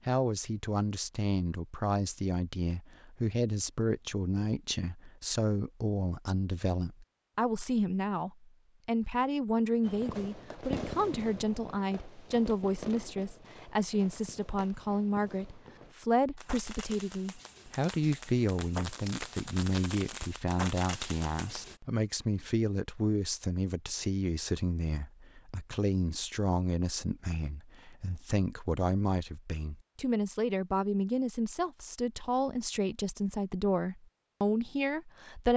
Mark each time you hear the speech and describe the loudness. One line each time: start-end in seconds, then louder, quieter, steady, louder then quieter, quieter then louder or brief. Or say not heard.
0.1-35.5 steady.